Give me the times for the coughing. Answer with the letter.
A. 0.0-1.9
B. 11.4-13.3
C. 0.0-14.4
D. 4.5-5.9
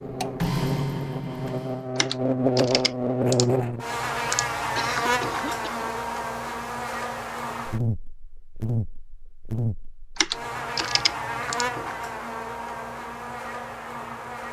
D.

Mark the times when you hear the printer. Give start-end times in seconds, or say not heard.
0.0-1.9.